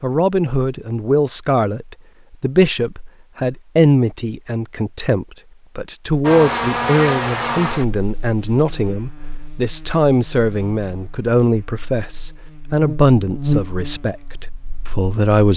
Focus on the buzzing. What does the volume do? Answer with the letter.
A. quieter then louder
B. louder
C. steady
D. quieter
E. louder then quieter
A.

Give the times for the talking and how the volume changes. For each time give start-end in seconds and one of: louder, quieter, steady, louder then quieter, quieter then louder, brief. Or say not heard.
0.0-15.5 steady.